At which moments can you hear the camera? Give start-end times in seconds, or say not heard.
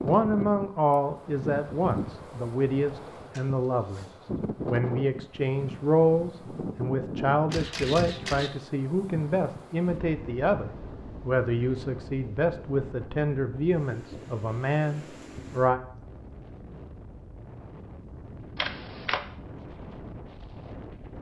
3.1-4.2, 7.5-8.5, 18.6-19.2.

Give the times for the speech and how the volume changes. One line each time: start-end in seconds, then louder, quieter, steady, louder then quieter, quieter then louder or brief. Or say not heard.
0.0-15.8 steady.